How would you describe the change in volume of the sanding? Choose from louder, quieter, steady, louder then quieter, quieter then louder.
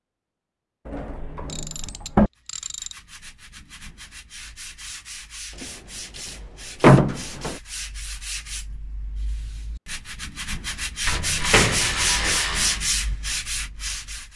louder.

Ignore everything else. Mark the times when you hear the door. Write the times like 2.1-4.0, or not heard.
0.8-2.3, 6.8-7.5, 11.1-12.3.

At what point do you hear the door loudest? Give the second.
7 s.